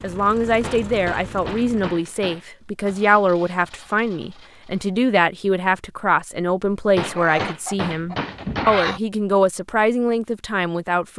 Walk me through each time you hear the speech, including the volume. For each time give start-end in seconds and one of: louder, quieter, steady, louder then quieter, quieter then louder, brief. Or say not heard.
0.0-11.1 steady.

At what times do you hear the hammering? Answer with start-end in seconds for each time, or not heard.
0.6-2.5, 7.0-8.7.